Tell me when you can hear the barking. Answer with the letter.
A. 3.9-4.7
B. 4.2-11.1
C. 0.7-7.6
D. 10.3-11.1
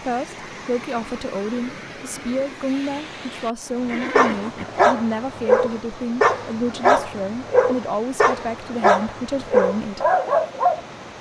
B.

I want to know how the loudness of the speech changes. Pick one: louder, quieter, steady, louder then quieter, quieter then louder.
steady.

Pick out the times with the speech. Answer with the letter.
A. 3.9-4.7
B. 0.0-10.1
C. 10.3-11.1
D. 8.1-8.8
B.